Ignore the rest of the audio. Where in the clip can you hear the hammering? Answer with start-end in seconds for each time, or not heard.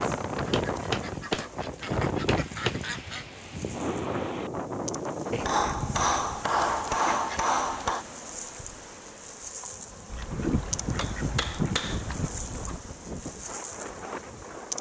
0.5-2.8, 5.3-8.1, 10.3-12.3.